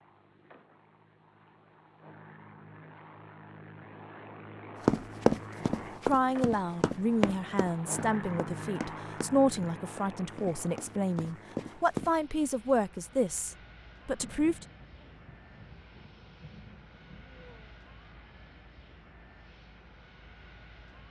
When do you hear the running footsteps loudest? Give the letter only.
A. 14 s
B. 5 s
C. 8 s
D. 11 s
B.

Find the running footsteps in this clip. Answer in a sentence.
The running footsteps can be heard from 4.8 to 12.1 s.